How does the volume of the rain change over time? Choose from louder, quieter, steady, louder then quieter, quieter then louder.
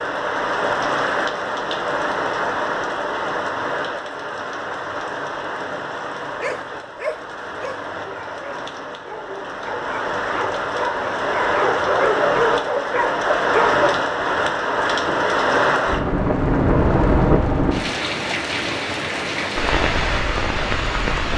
quieter then louder.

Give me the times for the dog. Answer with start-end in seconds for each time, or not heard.
6.2-13.9.